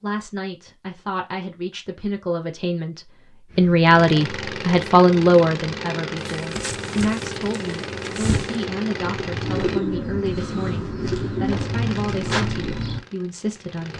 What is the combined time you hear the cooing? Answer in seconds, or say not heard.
7 s.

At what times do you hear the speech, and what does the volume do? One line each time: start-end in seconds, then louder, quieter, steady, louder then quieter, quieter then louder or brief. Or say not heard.
0.0-13.9 louder then quieter.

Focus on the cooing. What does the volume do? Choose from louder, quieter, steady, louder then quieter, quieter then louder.
louder.